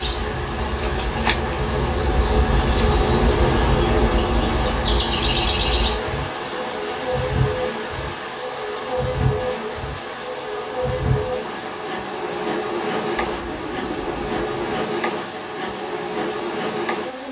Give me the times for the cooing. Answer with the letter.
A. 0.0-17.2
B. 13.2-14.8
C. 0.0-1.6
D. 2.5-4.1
B.